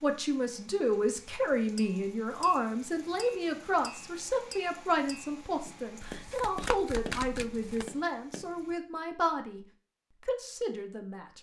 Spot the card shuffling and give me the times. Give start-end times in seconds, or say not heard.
6.0-7.9.